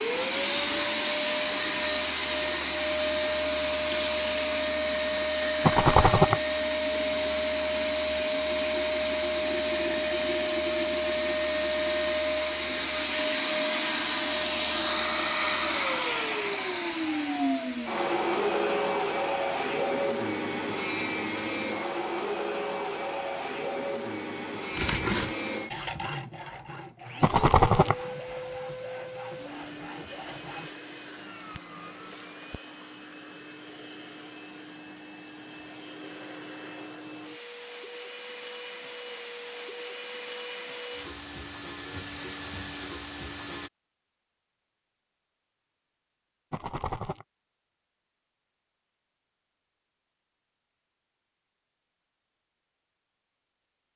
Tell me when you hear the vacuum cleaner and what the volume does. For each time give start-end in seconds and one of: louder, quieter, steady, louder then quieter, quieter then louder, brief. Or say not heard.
0.0-43.7 quieter.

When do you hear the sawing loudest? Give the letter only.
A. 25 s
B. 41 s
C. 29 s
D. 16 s
A.